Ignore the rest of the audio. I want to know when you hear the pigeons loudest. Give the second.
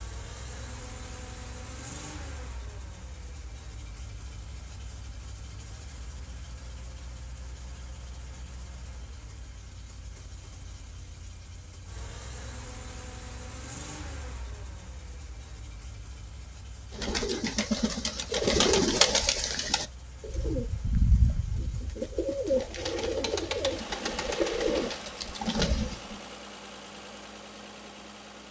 19 s.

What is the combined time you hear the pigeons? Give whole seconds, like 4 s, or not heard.
9 s.